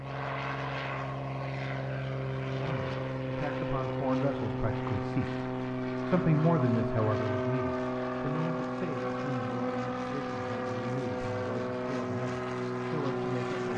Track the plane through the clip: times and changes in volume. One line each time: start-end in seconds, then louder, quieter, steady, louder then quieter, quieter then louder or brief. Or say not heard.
0.0-13.7 steady.